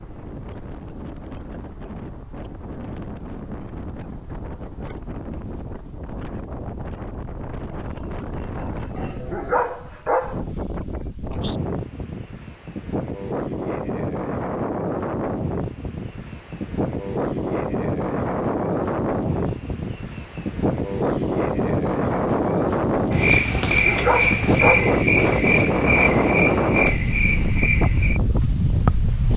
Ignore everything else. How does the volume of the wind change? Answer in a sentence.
The loudness of the wind goes up.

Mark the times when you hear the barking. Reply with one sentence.
You can hear the barking from 8.6 to 10.4 s and from 23.1 to 24.9 s.